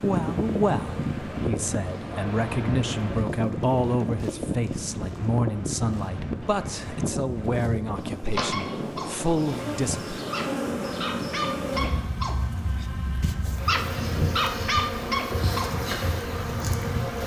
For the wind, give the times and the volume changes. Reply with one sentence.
The wind can be heard from 0.0 to 17.2 s, getting quieter.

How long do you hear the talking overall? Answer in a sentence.
The talking can be heard for 10 seconds in total.